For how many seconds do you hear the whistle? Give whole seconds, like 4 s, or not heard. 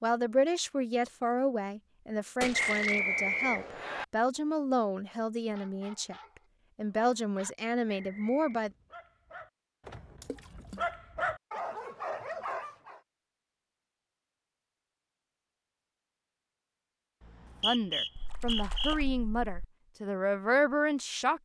4 s.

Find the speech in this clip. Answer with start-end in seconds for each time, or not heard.
0.0-6.2, 6.8-8.7, 17.6-21.4.